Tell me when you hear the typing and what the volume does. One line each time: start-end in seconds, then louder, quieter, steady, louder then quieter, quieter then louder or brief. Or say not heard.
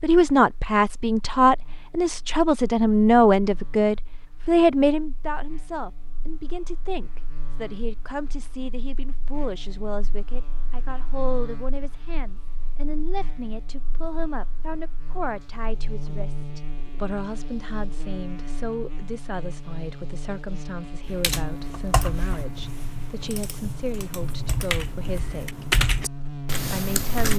21.0-27.3 quieter then louder.